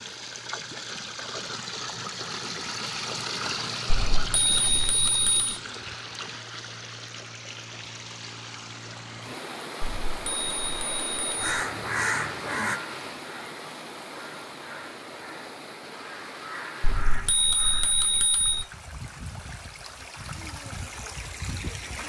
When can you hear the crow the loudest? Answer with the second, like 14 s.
12 s.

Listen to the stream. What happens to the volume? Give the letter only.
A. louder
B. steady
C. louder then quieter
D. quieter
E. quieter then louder
D.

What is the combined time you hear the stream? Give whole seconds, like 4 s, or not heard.
22 s.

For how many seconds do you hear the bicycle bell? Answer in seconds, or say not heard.
5 s.